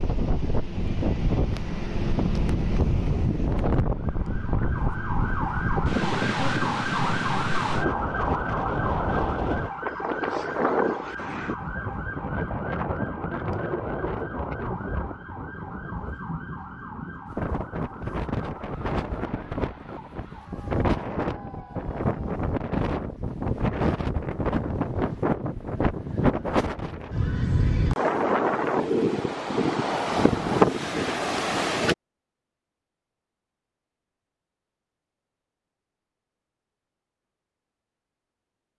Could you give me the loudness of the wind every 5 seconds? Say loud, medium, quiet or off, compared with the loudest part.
medium, medium, medium, medium, medium, loud, loud, off.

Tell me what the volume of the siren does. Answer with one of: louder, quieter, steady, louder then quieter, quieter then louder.
quieter.